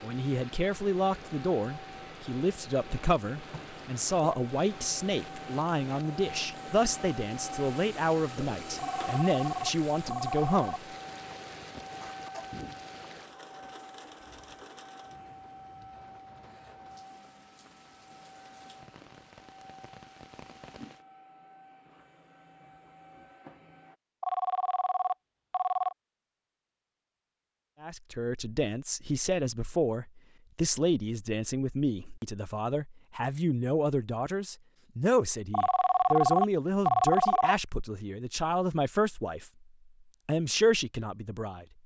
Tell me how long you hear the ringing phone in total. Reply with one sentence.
You can hear the ringing phone for 6 seconds altogether.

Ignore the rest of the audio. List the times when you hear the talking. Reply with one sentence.
The talking can be heard from 0.0 to 10.8 s, from 27.8 to 39.5 s and from 40.2 to 41.6 s.